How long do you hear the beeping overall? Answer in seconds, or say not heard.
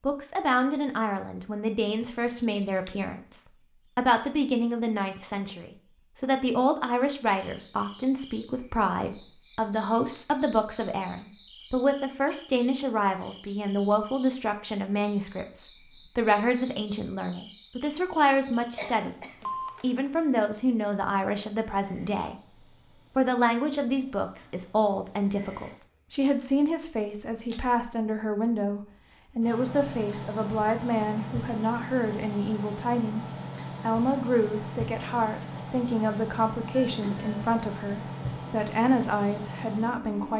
2 s.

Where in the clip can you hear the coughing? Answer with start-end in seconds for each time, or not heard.
18.8-19.6.